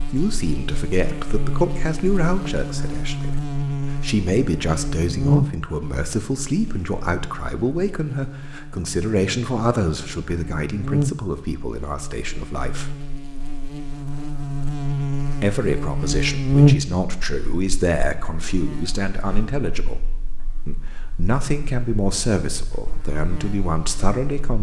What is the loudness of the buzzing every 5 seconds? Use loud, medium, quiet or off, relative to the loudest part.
medium, medium, medium, loud, quiet.